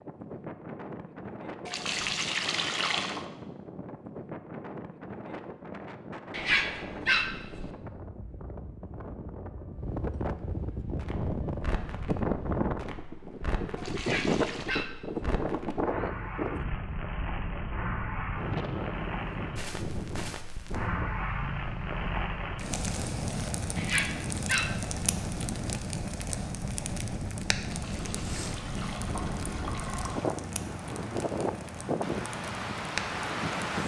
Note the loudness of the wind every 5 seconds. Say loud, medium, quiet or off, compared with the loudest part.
medium, medium, loud, loud, medium, medium, loud.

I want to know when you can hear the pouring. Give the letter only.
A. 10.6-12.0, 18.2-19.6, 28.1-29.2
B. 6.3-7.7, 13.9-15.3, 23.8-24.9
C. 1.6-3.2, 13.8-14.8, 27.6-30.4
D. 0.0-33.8
C.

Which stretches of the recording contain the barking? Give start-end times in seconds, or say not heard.
6.3-7.7, 13.9-15.3, 23.8-24.9.